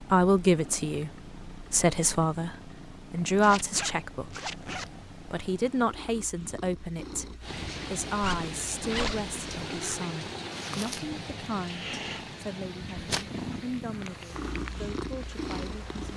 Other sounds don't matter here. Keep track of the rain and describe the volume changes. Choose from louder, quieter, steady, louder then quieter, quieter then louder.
quieter.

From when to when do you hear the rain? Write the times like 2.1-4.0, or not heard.
7.4-16.1.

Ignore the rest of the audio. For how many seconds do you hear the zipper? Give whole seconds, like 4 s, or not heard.
3 s.